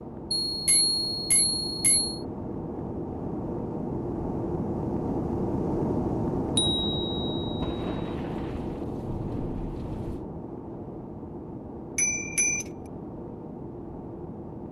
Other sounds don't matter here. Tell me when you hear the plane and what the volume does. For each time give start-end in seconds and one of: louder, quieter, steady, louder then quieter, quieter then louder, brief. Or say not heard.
0.0-14.6 louder then quieter.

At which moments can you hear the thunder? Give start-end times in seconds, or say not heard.
7.5-10.2.